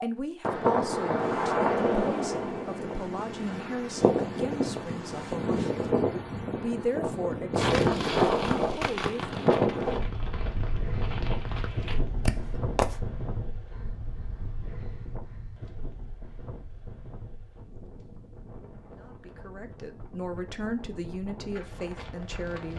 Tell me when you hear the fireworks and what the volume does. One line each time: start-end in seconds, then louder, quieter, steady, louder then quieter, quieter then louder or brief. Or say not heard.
7.5-13.0 quieter then louder.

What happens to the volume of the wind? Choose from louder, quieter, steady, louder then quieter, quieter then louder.
quieter.